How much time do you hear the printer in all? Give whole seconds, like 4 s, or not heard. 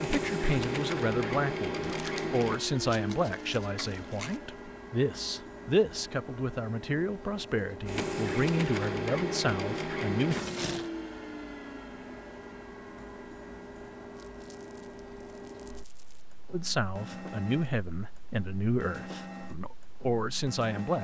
21 s.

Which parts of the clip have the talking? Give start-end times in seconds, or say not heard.
0.0-10.3, 16.5-20.9.